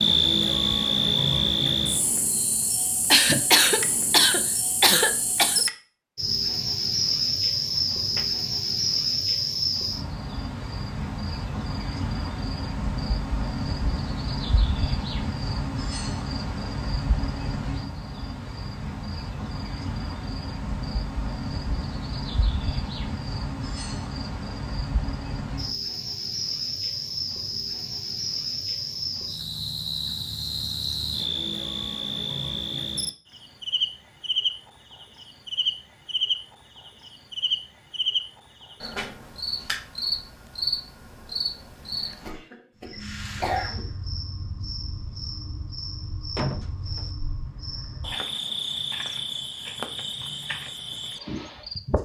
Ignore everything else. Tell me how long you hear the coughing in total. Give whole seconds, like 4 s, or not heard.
4 s.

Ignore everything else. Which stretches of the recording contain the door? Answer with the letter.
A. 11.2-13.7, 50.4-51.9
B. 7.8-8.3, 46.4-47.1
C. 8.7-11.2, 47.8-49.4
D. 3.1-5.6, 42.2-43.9
B.